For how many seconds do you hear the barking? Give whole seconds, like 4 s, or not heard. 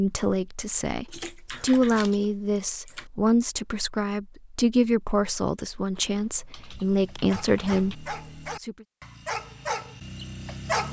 4 s.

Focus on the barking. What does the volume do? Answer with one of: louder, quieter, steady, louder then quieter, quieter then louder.
louder then quieter.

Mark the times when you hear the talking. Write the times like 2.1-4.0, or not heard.
0.0-8.8.